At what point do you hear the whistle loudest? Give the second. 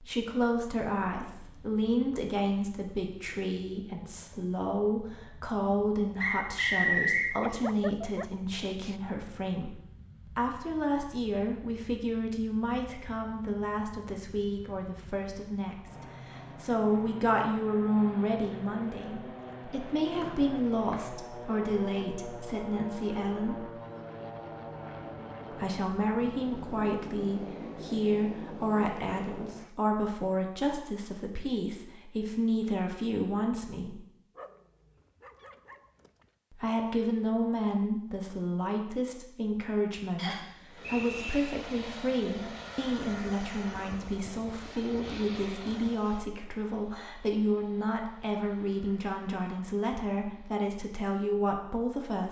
7 s.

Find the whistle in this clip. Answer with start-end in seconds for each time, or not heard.
6.2-7.3, 20.2-21.1, 40.1-41.5.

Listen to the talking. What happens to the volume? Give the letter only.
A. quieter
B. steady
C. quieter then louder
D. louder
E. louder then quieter
B.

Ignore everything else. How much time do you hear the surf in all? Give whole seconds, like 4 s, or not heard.
not heard.